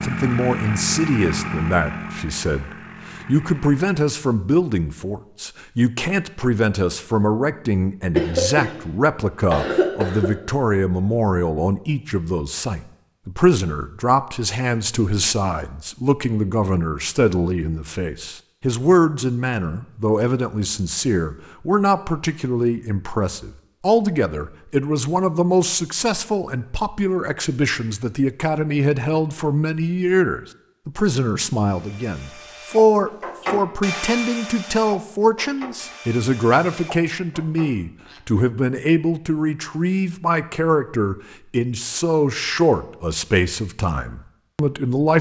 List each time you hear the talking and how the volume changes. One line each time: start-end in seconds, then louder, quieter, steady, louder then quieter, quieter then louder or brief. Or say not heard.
0.0-45.1 steady.